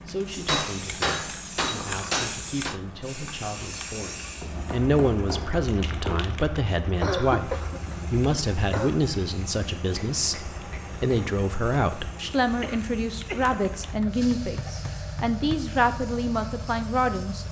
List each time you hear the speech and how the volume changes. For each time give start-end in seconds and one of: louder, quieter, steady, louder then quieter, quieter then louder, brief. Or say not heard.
0.1-17.4 louder.